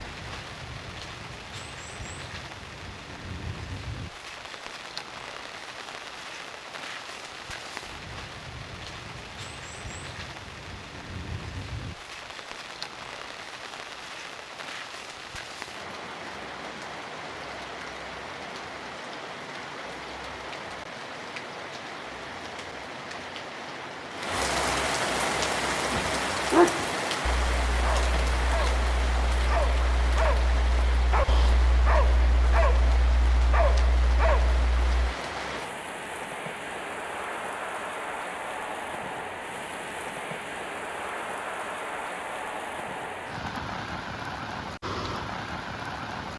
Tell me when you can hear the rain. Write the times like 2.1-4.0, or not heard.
0.0-46.3.